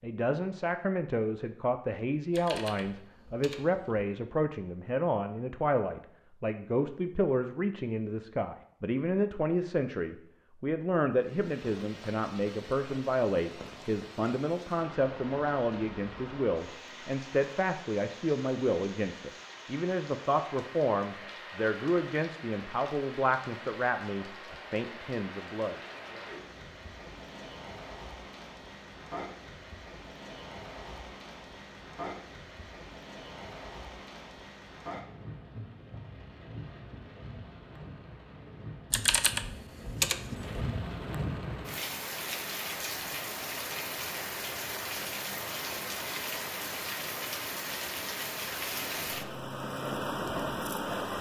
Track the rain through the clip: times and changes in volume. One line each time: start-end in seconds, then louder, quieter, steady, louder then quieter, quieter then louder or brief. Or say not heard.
11.2-51.1 louder.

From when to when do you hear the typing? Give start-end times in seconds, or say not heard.
2.3-4.0, 38.9-40.6.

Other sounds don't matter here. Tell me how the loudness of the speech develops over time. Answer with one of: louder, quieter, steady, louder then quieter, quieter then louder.
steady.